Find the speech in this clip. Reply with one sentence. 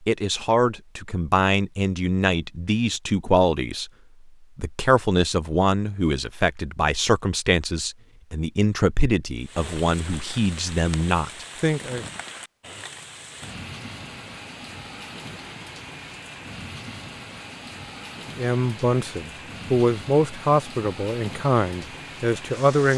You can hear the speech from 0.1 to 3.9 s, from 4.5 to 12.1 s and from 18.4 to 22.9 s.